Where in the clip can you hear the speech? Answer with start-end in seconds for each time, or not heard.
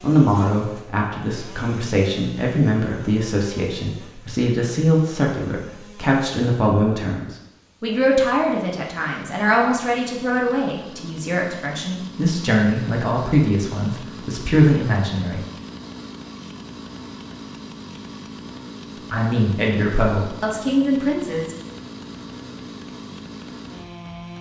0.0-15.4, 19.1-21.6.